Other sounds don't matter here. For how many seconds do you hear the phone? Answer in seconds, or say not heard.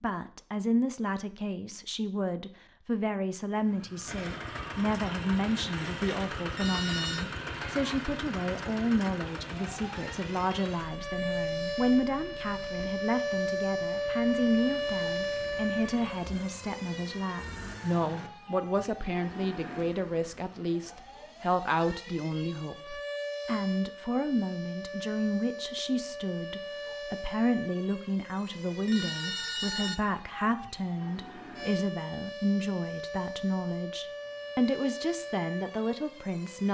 2 s.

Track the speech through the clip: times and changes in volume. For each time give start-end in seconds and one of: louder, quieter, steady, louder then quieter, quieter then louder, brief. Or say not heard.
0.0-36.6 steady.